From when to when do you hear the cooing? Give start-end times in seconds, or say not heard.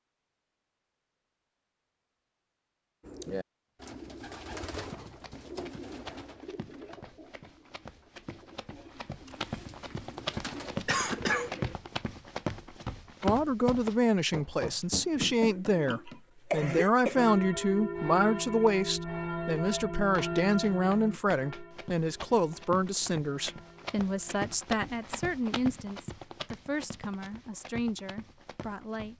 3.0-11.8.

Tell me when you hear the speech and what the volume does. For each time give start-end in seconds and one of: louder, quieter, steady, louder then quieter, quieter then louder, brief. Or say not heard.
13.2-29.1 quieter.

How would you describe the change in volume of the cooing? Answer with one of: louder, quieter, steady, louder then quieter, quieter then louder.
quieter then louder.